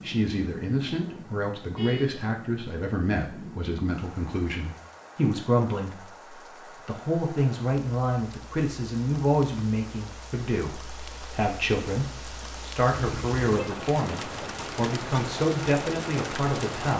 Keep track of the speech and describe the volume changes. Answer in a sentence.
The loudness of the speech stays about the same.